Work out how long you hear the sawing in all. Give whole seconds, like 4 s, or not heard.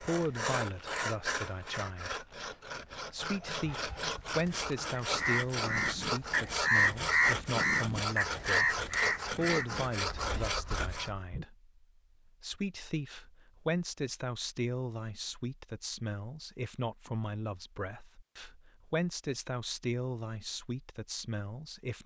11 s.